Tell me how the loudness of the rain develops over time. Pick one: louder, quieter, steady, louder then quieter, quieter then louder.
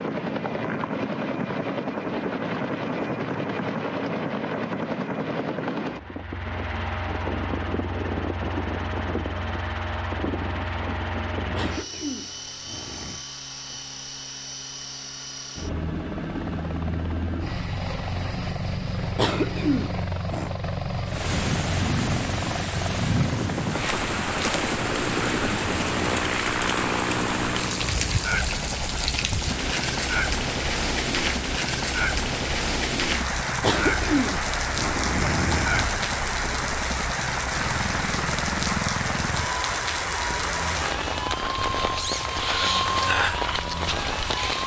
steady.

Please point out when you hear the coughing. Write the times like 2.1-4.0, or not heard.
11.6-13.2, 19.1-20.5, 33.6-36.0.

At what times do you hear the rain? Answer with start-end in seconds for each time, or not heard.
21.1-44.6.